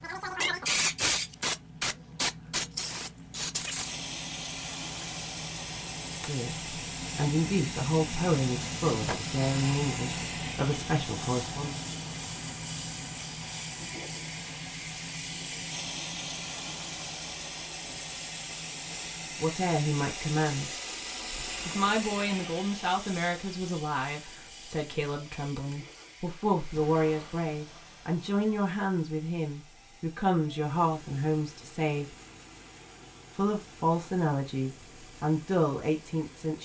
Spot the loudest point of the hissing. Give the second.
1 s.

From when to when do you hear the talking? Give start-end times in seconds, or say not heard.
6.2-11.8, 19.4-20.8, 21.6-32.0, 33.4-36.6.